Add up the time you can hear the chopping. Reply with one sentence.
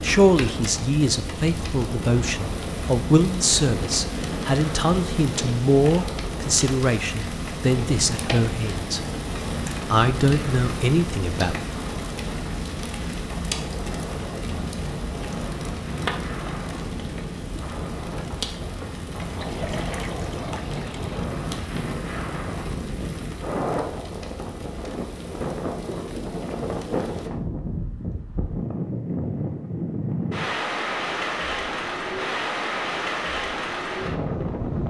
You can't hear the chopping here.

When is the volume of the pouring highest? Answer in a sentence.
The volume of the pouring peaks at 20 seconds.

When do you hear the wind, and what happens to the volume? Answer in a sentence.
You can hear the wind from 0.0 to 34.8 s, getting louder.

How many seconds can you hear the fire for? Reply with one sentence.
The fire can be heard for 27 seconds in total.